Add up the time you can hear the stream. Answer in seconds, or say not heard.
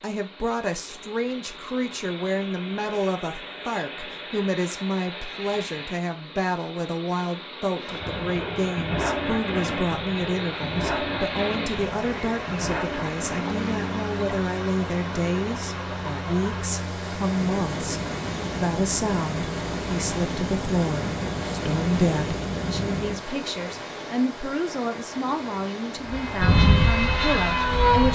28 s.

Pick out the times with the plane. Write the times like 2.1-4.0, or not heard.
7.8-23.2, 26.0-28.1.